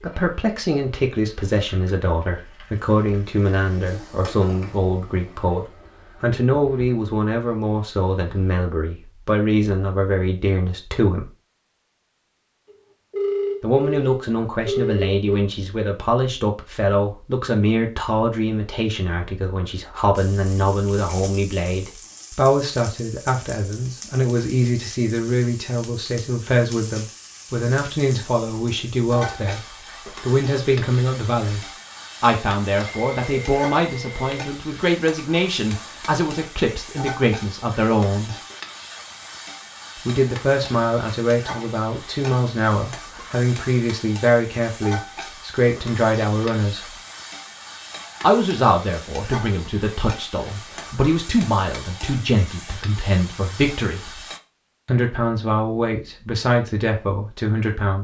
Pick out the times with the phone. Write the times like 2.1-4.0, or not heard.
12.7-15.4, 32.9-34.5.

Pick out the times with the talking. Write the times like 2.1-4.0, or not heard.
0.0-11.3, 13.6-38.4, 40.0-47.0, 48.2-54.2, 54.9-57.9.